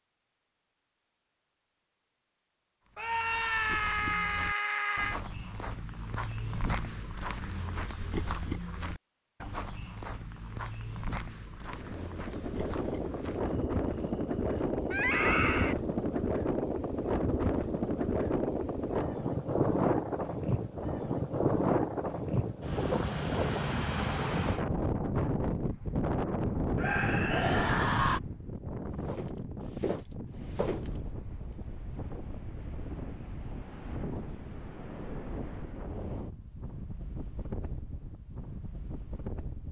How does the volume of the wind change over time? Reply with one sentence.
The loudness of the wind goes down.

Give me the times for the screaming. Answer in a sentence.
The screaming can be heard from 3.0 to 5.2 s, from 14.9 to 15.8 s and from 26.8 to 28.2 s.